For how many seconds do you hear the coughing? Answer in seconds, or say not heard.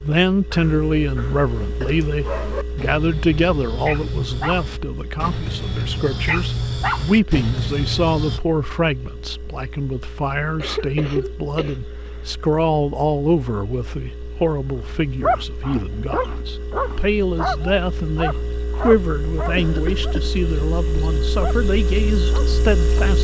4 s.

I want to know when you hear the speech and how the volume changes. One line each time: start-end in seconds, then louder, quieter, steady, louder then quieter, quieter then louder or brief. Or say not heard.
0.0-23.1 steady.